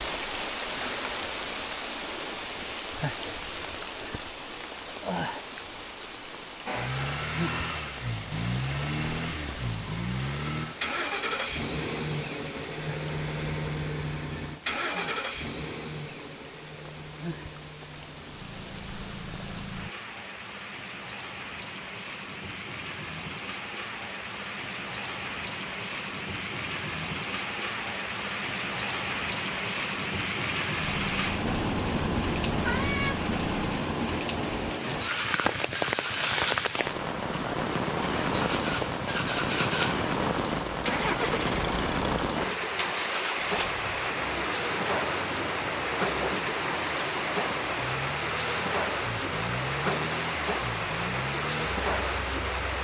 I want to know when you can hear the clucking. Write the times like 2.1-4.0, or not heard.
not heard.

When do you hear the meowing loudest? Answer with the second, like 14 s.
33 s.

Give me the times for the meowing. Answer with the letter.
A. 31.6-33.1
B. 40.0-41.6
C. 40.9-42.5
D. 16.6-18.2
A.